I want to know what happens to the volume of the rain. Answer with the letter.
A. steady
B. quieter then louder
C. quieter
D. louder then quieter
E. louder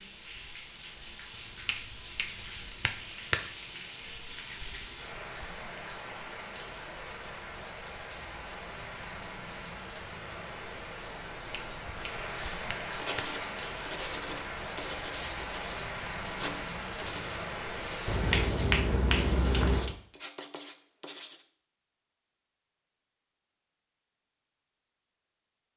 E.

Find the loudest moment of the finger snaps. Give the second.
19 s.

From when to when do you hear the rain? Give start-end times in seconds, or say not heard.
0.0-18.5.